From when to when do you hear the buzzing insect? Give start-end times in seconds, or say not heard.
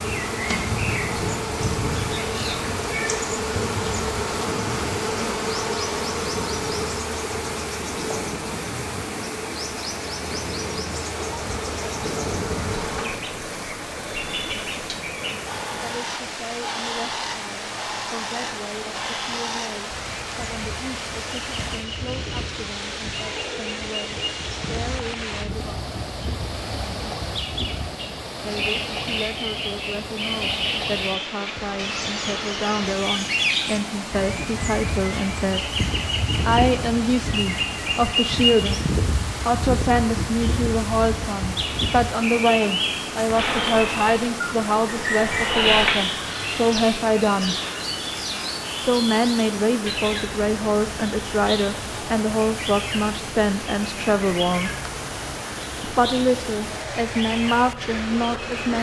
0.0-13.1, 43.3-46.0.